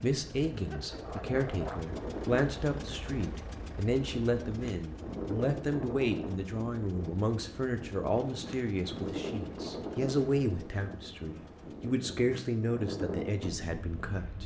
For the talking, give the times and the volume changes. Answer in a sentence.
The talking can be heard from 0.0 to 14.4 s, at a steady volume.